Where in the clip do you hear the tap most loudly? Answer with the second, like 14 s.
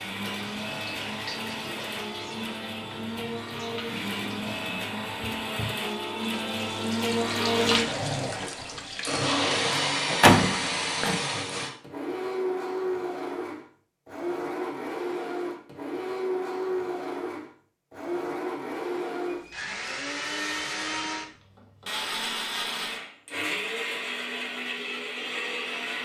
8 s.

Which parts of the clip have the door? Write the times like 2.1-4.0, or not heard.
9.7-11.2.